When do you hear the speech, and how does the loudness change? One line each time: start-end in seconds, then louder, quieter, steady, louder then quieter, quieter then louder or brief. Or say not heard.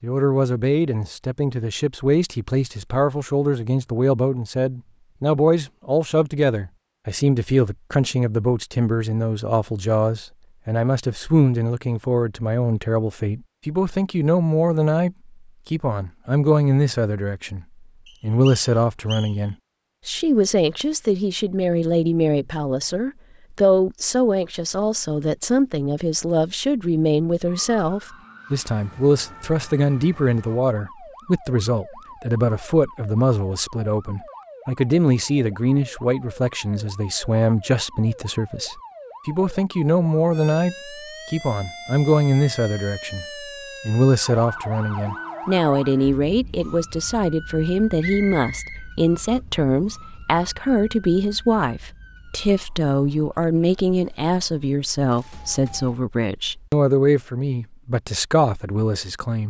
0.0-59.4 steady.